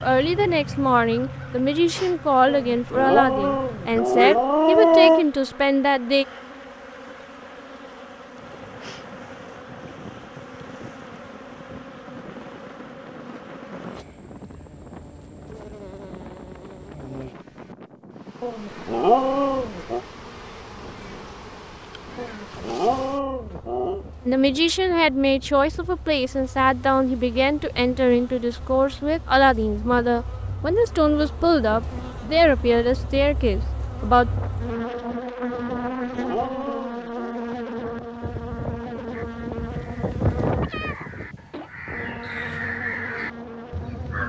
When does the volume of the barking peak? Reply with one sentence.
The volume of the barking peaks at 5 seconds.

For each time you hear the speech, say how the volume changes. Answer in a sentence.
You can hear the speech from 0.0 to 6.2 s, at a steady volume; and from 24.2 to 34.3 s, at a steady volume.